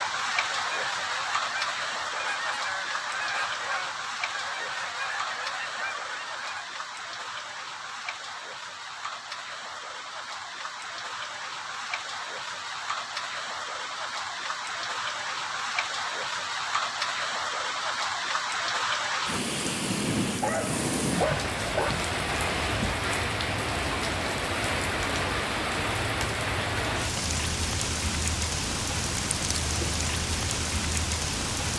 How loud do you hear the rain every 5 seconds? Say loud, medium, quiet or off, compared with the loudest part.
loud, medium, medium, loud, loud, loud, loud.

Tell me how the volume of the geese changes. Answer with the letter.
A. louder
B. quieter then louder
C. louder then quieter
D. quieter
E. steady
E.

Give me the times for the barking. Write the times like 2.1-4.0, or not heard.
20.4-21.9.